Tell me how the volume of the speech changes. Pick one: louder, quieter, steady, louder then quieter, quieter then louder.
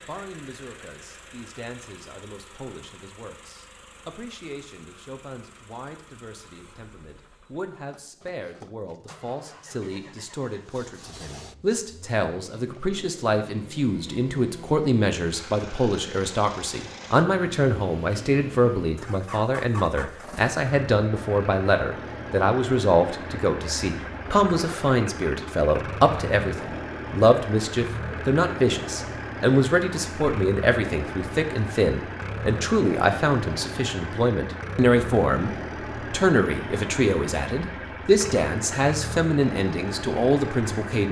louder.